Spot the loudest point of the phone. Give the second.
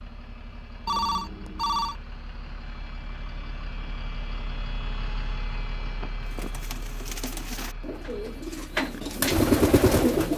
1 s.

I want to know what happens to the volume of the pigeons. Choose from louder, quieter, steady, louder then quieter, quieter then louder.
louder.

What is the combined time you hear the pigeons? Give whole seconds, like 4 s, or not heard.
4 s.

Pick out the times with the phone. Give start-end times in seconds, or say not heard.
0.8-1.9, 5.8-6.5.